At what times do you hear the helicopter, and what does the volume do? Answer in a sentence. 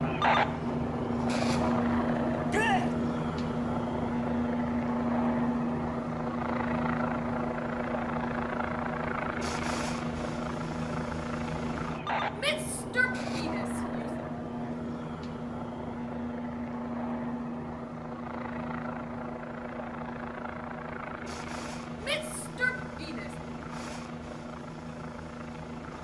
The helicopter can be heard from 0.0 to 25.9 s, getting quieter.